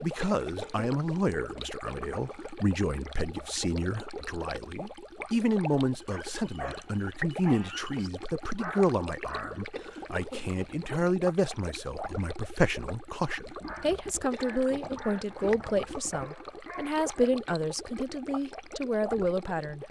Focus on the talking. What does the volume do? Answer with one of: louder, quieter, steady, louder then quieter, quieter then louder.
steady.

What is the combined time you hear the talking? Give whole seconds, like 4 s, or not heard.
20 s.